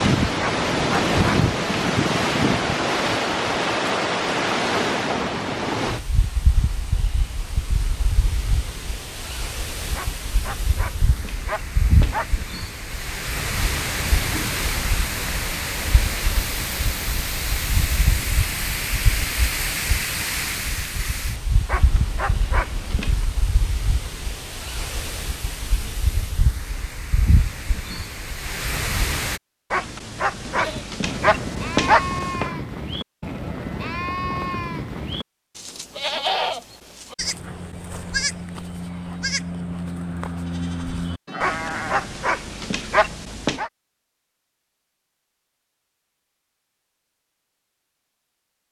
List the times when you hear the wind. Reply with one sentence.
The wind can be heard from 0.0 to 29.4 s.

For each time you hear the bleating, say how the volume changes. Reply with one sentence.
You can hear the bleating from 30.4 to 42.1 s, at a steady volume.